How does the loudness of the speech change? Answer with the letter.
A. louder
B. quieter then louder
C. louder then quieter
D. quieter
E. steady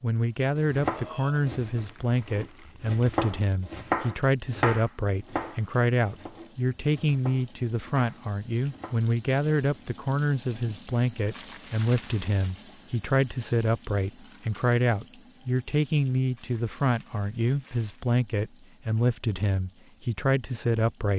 E.